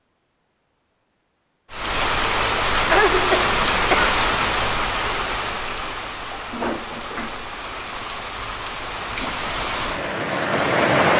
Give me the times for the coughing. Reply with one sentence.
The coughing can be heard from 2.7 to 4.2 s.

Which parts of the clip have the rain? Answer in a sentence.
The rain can be heard from 1.7 to 11.1 s.